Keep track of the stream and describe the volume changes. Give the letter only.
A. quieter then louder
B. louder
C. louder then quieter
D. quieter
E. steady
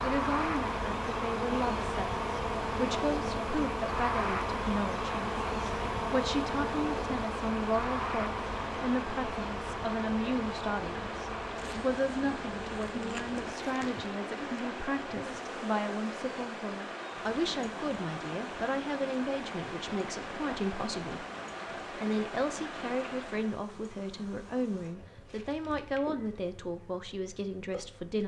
E.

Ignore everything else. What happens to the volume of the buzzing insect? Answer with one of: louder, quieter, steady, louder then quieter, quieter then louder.
quieter.